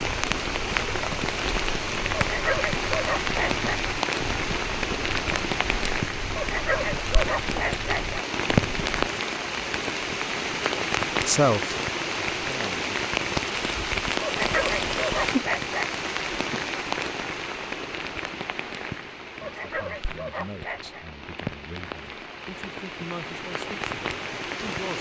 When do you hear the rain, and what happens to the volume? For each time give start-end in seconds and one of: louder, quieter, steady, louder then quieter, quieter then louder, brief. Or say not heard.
0.0-24.9 quieter.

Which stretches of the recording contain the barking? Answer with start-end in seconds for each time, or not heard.
2.1-3.7, 6.3-8.2, 14.2-15.9, 19.4-21.1.